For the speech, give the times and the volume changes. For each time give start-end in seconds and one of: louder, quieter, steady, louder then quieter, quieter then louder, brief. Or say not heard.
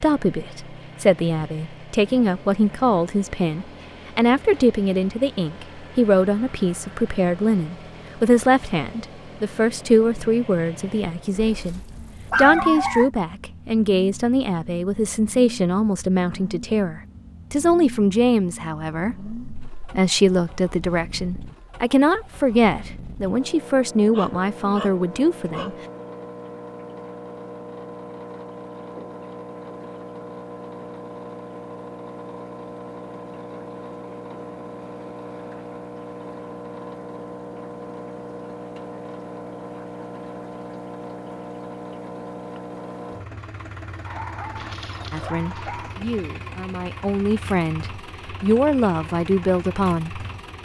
0.0-25.8 steady
45.1-50.6 louder.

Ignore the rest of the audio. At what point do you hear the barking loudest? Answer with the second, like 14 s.
13 s.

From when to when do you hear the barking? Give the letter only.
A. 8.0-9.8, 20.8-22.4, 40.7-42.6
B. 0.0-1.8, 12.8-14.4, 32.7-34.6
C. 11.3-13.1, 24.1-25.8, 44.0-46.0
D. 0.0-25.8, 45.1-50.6
C.